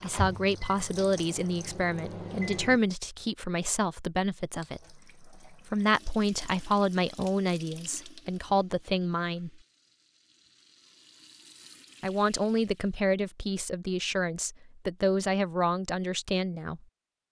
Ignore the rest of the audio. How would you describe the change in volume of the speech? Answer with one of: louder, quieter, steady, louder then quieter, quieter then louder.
steady.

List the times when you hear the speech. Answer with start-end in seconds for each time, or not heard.
0.0-9.5, 12.0-16.8.